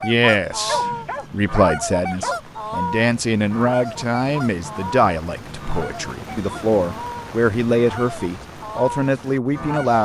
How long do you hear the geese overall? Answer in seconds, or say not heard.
10 s.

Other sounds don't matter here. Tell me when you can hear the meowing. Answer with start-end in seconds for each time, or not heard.
not heard.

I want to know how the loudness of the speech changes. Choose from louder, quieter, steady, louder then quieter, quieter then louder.
steady.